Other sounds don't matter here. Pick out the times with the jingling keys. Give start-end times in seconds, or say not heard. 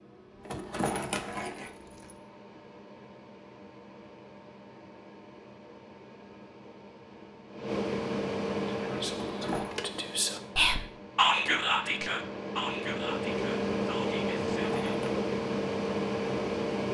0.5-2.1, 9.1-9.8, 14.6-15.1.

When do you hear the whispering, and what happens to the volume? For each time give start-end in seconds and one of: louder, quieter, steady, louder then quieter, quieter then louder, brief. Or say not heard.
8.8-15.0 louder then quieter.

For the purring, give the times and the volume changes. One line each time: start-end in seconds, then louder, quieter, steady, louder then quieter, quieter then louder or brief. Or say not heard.
not heard.